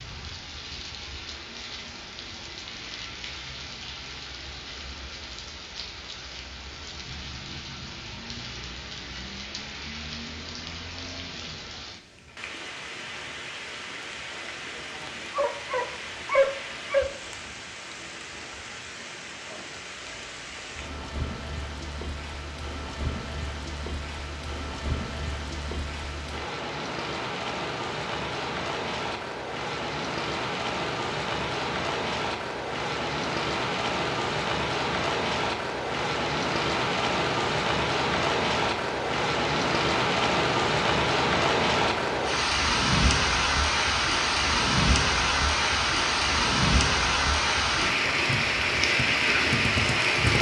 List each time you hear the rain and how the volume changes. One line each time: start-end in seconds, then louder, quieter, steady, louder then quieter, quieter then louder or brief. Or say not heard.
0.0-50.3 louder.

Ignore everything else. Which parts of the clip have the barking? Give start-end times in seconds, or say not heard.
15.3-17.1.